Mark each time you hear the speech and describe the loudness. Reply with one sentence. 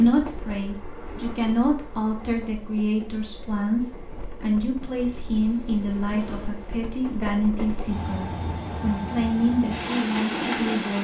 The speech can be heard from 0.0 to 10.9 s, at a steady volume.